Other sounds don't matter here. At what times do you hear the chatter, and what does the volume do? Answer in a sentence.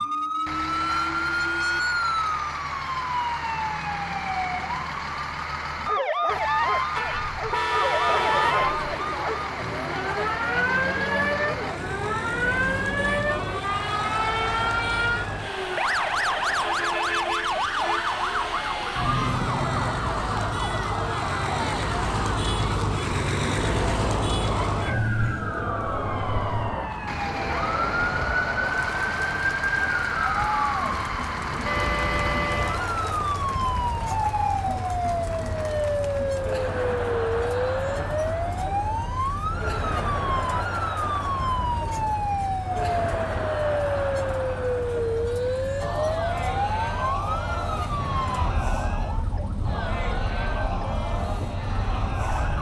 You can hear the chatter from 8.1 to 52.5 s, at a steady volume.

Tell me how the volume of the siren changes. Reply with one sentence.
The volume of the siren stays about the same.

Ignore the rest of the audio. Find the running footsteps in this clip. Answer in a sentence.
The running footsteps can't be heard in this clip.